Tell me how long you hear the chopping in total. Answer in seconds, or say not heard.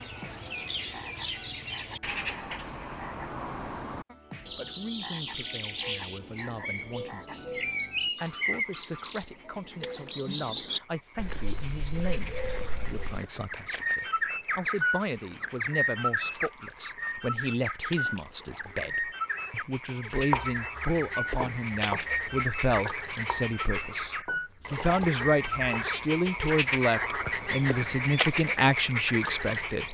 6 s.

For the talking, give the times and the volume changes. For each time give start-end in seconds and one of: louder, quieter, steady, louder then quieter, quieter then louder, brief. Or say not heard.
4.5-29.8 louder.